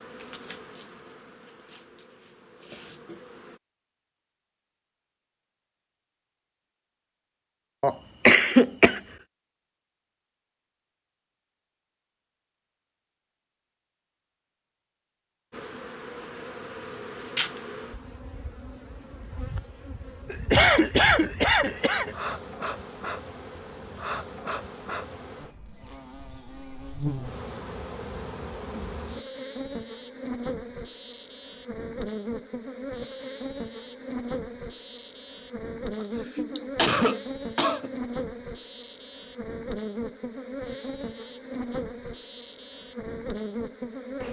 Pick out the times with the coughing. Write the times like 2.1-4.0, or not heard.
7.8-9.0, 20.3-22.1, 36.0-38.0.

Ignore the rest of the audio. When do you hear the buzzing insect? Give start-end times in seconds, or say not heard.
0.0-3.6, 15.5-44.2.